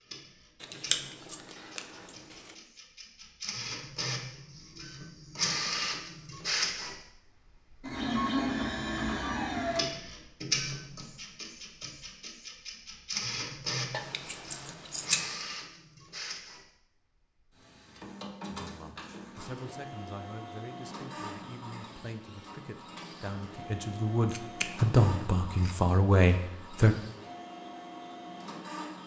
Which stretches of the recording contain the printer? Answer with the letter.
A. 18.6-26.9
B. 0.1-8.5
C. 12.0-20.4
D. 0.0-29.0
D.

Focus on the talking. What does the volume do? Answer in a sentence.
The loudness of the talking goes up.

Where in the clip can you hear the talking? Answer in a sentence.
You can hear the talking from 18.6 to 26.9 s.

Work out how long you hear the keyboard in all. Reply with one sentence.
You can't hear the keyboard here.